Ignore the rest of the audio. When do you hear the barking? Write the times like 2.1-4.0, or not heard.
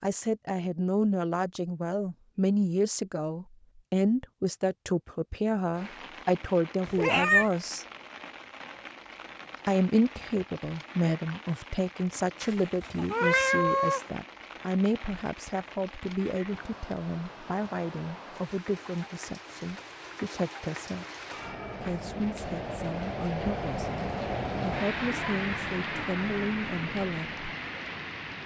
not heard.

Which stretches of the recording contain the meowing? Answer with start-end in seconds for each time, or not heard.
6.8-7.5, 12.4-14.0, 21.3-22.4.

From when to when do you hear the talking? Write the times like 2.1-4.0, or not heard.
0.0-7.8, 9.7-21.1, 21.8-27.4.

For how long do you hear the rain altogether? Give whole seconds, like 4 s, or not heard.
23 s.